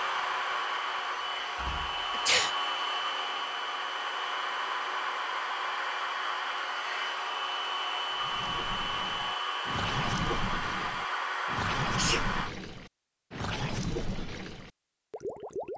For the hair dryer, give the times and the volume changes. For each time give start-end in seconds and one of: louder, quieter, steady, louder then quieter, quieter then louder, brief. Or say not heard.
0.0-12.6 steady.